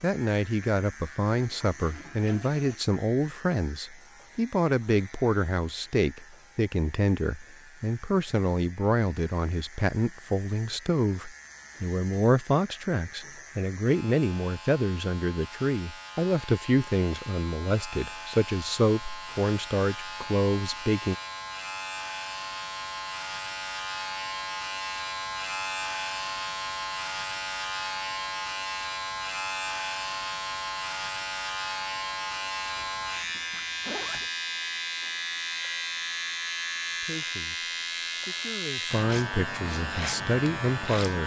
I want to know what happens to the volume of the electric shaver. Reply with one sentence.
The loudness of the electric shaver goes up.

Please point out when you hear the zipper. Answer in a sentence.
The zipper can be heard from 32.8 to 34.3 s.